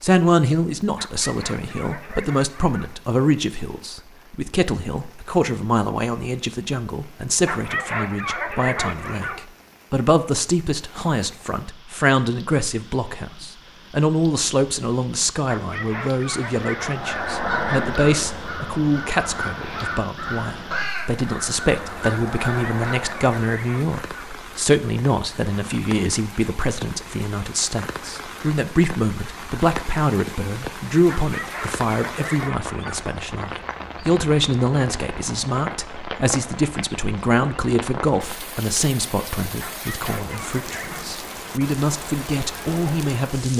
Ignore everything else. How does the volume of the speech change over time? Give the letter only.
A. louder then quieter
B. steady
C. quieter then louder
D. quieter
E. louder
B.